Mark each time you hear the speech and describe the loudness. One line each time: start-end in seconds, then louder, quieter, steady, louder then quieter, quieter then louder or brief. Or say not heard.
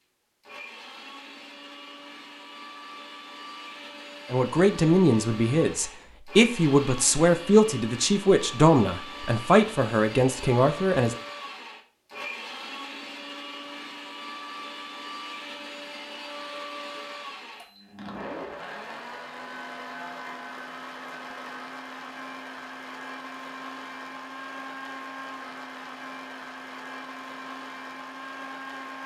4.3-11.2 steady.